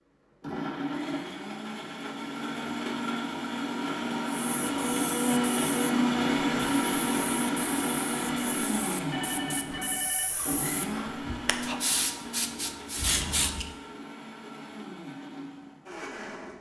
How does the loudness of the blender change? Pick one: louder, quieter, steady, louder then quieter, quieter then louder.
louder then quieter.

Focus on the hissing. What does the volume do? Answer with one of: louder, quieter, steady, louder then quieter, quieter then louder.
louder.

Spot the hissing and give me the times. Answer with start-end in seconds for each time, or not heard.
4.4-13.7.